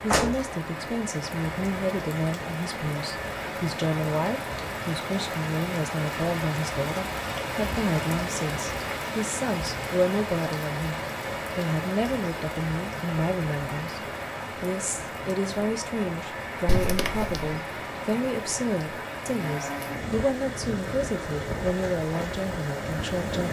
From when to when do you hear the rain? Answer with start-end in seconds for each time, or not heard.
0.0-23.4.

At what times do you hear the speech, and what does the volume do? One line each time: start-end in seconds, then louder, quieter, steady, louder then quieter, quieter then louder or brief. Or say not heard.
0.0-23.4 steady.